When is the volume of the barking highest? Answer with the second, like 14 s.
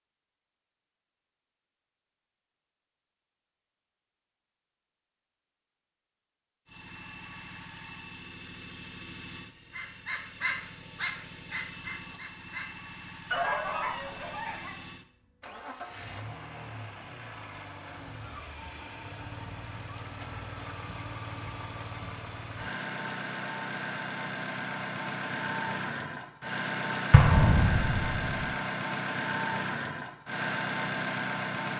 13 s.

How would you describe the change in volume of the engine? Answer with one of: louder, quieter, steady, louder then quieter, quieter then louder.
louder.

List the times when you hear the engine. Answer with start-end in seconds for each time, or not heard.
6.7-31.7.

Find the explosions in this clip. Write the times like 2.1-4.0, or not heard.
27.1-28.5.